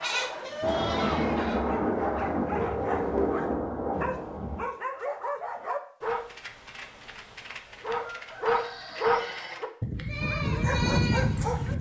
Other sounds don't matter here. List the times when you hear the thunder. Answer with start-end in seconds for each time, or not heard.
0.6-4.7.